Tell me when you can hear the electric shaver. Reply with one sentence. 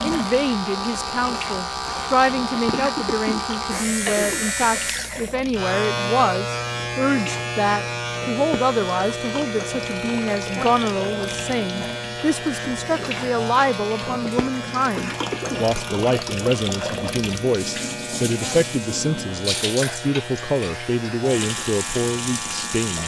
You can hear the electric shaver from 0.0 to 23.0 s.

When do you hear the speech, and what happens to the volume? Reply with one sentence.
You can hear the speech from 0.0 to 23.0 s, at a steady volume.